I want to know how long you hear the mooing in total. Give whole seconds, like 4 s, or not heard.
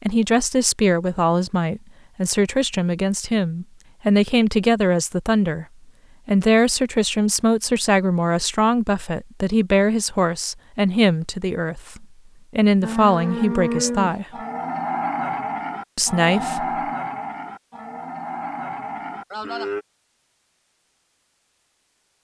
7 s.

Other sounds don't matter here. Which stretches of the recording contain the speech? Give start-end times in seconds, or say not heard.
0.0-5.7, 6.2-14.2, 15.9-16.8.